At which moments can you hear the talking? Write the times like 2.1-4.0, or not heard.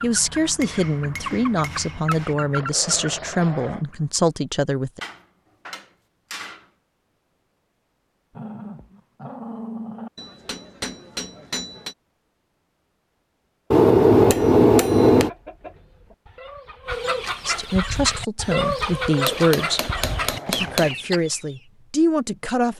0.0-5.0, 17.4-19.8, 20.4-22.7.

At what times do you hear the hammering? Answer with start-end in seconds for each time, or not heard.
0.6-2.4, 5.0-6.7, 10.2-11.9, 13.7-15.3, 19.2-20.9.